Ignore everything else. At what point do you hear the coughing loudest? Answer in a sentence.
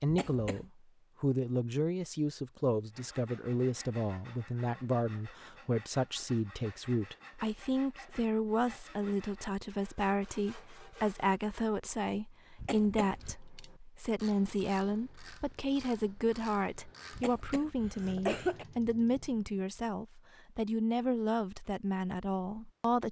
The loudest moment of the coughing is at 18 seconds.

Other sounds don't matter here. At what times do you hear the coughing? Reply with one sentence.
The coughing can be heard from 0.1 to 0.7 s, from 12.6 to 13.3 s and from 17.1 to 18.6 s.